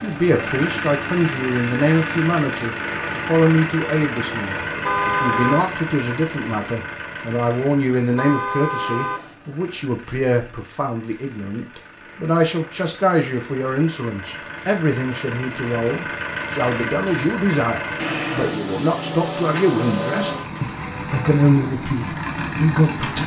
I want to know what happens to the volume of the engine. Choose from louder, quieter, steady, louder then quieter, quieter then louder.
quieter then louder.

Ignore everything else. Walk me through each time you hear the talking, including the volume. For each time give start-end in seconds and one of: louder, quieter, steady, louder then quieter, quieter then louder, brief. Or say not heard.
0.0-23.2 steady.